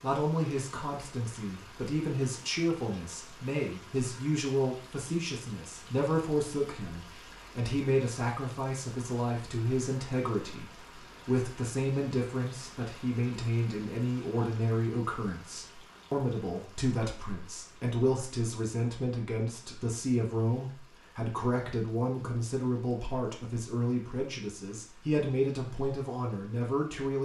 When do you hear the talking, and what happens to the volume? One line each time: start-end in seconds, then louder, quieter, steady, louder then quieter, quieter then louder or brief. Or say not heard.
0.0-27.1 steady.